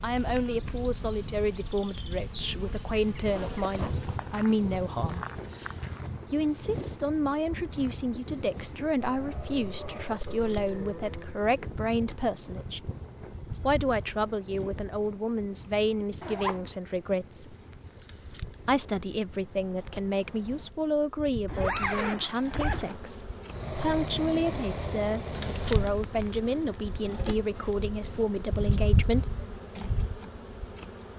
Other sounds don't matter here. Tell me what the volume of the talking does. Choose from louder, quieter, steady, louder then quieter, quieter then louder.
steady.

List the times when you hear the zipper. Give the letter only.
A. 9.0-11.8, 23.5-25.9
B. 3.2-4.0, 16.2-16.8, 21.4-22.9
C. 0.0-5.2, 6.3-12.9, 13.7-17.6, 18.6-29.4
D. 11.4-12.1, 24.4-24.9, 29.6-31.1
B.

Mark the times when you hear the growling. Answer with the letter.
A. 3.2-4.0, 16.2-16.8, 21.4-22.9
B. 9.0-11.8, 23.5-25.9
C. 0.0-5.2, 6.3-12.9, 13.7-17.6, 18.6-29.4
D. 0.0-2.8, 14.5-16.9
B.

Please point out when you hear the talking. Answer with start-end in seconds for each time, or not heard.
0.0-5.2, 6.3-12.9, 13.7-17.6, 18.6-29.4.